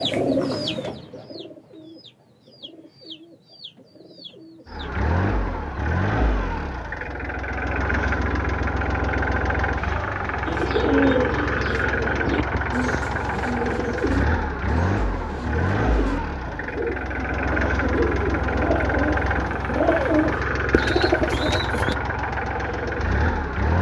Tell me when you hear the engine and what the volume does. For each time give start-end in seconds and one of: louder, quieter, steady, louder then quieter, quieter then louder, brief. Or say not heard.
4.7-23.7 steady.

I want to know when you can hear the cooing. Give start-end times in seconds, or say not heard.
0.0-5.0, 10.4-21.9.